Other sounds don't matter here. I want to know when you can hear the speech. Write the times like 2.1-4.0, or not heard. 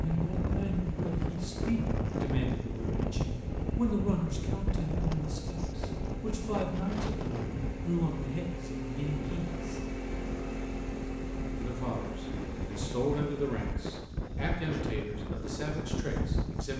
0.0-9.8, 11.6-16.7.